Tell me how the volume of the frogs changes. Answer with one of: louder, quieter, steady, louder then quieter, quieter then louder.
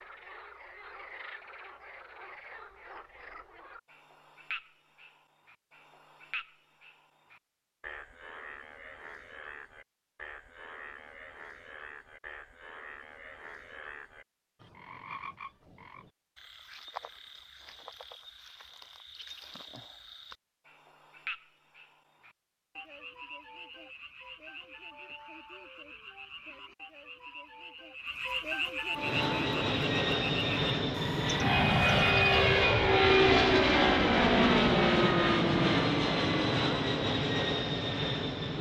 louder.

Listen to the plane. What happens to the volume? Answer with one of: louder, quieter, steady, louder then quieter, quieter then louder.
louder then quieter.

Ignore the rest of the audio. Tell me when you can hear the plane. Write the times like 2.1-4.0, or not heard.
28.9-38.5.